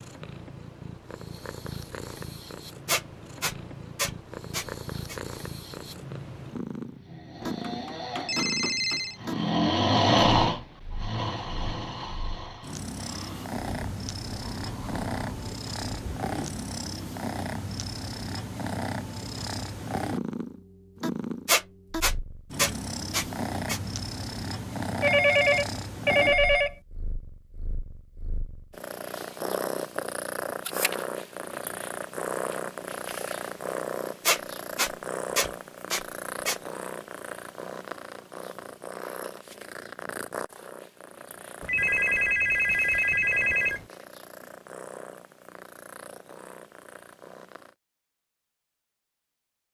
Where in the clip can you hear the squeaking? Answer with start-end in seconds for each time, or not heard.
2.9-5.2, 21.4-23.8, 34.2-36.5.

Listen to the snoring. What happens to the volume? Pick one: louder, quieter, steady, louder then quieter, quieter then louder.
louder then quieter.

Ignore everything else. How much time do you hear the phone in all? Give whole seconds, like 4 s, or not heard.
6 s.